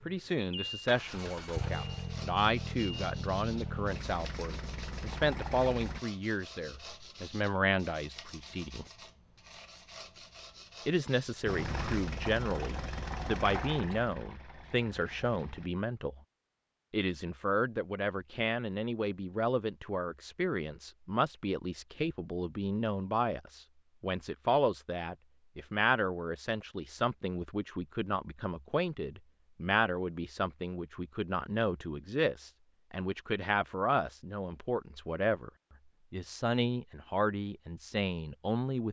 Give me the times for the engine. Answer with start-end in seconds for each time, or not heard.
0.0-6.0, 11.4-15.7.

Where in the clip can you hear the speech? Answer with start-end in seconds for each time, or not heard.
0.1-8.8, 10.8-16.2, 16.9-35.5, 36.1-38.8.